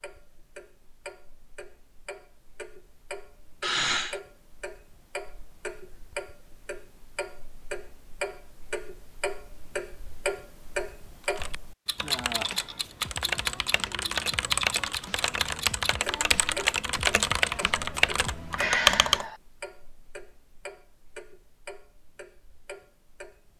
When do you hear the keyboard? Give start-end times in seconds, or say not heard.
11.2-19.2.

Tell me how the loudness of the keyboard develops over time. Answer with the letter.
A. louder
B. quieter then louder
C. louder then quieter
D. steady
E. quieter
A.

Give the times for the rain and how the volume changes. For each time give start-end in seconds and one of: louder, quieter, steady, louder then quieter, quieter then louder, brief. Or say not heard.
not heard.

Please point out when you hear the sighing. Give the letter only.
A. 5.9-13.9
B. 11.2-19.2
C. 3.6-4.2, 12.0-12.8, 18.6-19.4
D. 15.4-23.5
C.